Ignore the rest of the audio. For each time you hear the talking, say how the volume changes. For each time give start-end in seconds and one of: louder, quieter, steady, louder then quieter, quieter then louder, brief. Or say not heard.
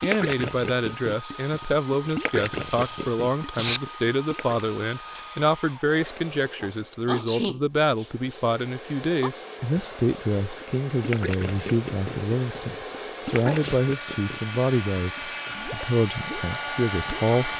0.0-17.5 steady.